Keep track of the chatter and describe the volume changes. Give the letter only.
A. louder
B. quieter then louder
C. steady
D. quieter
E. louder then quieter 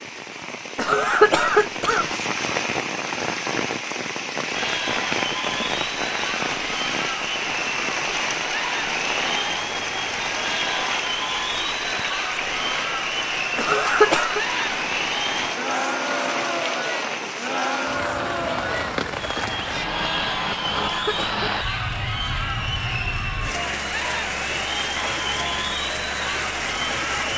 C.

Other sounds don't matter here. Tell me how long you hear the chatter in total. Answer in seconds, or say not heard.
23 s.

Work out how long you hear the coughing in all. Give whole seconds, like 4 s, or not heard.
3 s.